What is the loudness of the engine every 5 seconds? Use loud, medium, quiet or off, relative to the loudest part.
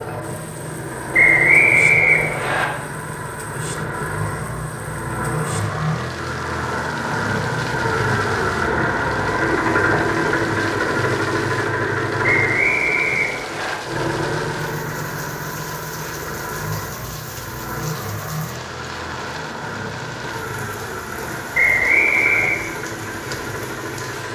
medium, loud, loud, medium, medium.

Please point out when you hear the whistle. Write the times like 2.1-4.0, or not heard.
1.1-2.6, 12.2-13.8, 21.5-22.6.